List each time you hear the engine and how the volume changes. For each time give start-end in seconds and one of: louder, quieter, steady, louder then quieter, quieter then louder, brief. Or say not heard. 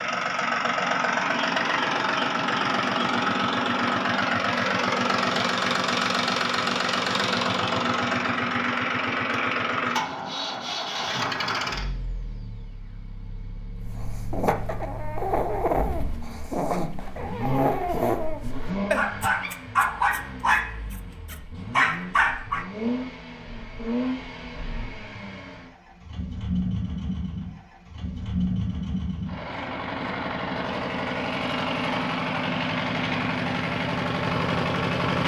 0.0-35.2 quieter then louder.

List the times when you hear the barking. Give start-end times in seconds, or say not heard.
13.8-22.6.